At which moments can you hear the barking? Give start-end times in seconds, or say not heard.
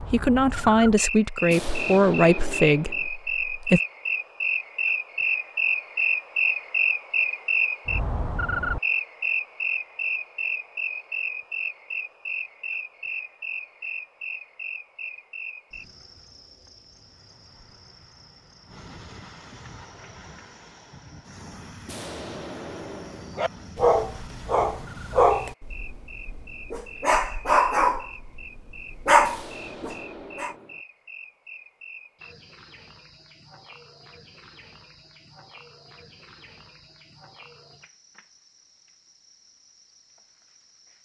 23.4-30.6.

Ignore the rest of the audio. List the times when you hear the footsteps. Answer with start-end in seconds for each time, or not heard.
not heard.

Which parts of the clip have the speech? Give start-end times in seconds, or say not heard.
0.0-3.8.